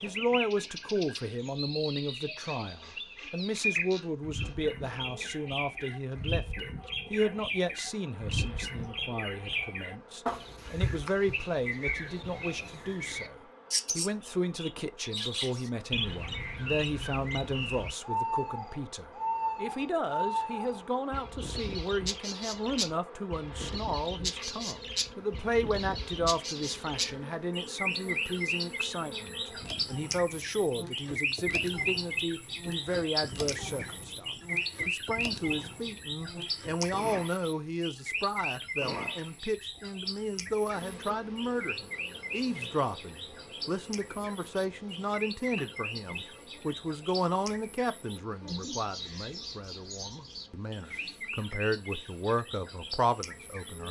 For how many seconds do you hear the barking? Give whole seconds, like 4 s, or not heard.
not heard.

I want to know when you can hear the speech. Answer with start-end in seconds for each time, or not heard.
0.0-53.8.